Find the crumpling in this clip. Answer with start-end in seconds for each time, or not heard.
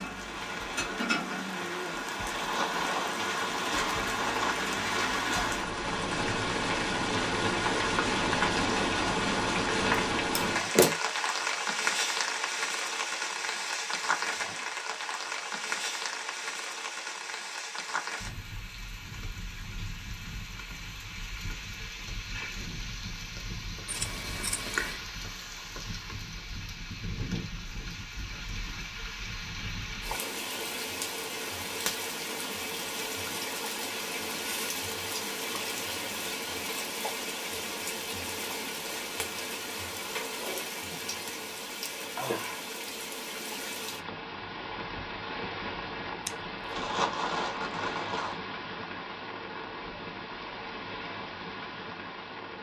2.2-4.7, 46.7-48.4.